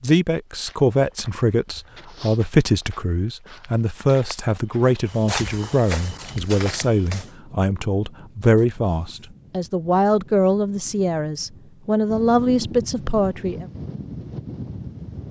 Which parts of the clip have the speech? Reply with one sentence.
The speech can be heard from 0.0 to 13.7 s.